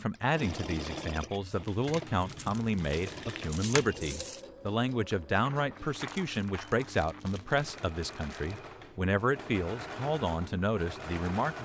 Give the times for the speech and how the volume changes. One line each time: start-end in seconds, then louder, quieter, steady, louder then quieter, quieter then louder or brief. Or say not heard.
0.0-11.6 steady.